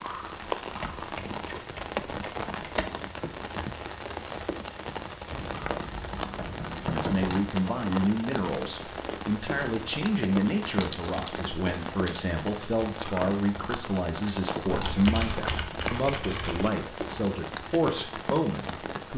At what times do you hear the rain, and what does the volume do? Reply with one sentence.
You can hear the rain from 0.0 to 19.1 s, at a steady volume.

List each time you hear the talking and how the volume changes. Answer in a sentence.
You can hear the talking from 6.8 to 19.1 s, at a steady volume.